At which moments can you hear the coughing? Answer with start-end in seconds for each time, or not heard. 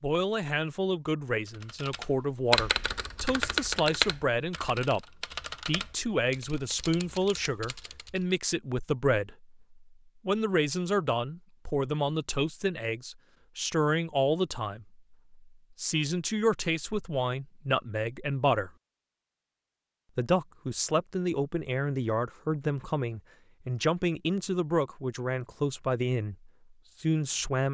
not heard.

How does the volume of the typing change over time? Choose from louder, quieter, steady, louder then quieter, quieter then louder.
quieter.